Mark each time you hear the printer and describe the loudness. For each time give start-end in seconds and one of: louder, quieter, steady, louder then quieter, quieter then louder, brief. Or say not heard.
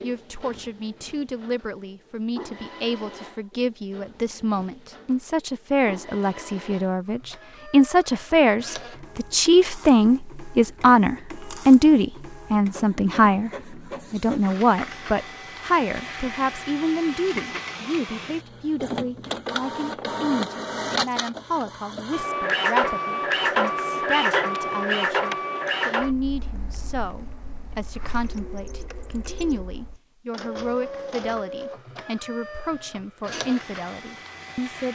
0.0-34.8 louder then quieter.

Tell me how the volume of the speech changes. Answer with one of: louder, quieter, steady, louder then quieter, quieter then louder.
louder then quieter.